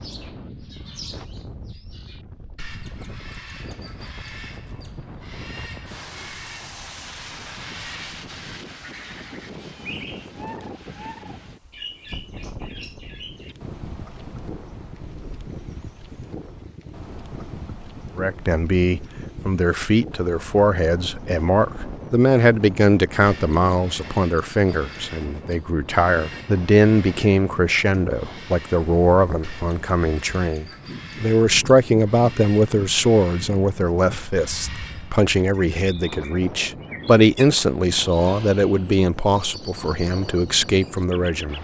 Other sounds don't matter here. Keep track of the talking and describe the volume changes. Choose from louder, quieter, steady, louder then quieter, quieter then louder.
steady.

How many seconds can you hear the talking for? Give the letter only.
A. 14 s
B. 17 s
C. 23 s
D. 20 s
C.